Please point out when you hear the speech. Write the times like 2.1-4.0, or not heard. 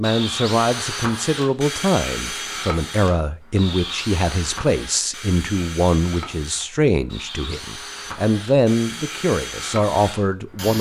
0.0-10.7.